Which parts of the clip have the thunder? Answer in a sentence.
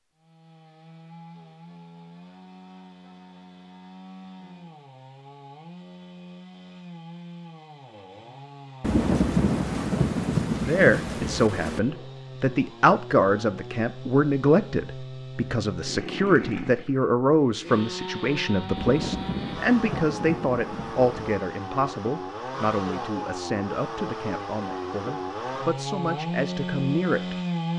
You can hear the thunder from 8.8 to 11.8 s and from 18.8 to 21.4 s.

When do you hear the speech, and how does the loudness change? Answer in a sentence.
You can hear the speech from 10.7 to 27.4 s, getting quieter.